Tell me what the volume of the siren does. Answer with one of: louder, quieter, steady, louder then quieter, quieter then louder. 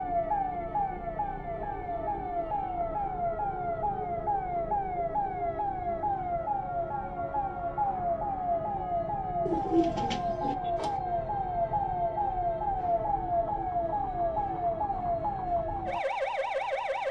steady.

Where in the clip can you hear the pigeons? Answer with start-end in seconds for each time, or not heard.
9.4-10.6.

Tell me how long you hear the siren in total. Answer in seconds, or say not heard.
17 s.